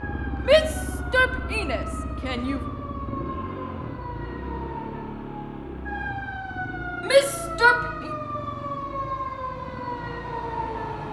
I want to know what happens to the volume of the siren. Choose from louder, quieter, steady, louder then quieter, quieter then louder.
louder.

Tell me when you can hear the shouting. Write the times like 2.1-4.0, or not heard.
0.5-2.6, 7.0-8.1.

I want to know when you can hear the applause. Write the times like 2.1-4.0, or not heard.
not heard.